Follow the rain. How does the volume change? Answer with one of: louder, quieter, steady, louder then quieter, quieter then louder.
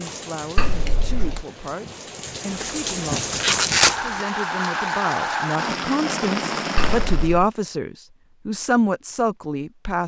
louder.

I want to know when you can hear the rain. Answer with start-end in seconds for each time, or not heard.
0.0-7.3.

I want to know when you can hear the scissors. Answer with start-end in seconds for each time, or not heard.
0.6-1.4, 6.8-7.5.